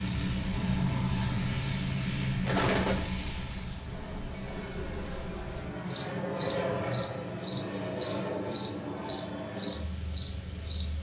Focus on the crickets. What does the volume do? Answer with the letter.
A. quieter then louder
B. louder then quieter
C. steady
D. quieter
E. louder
E.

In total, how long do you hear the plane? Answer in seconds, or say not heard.
11 s.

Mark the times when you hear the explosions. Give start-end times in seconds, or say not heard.
2.5-3.1.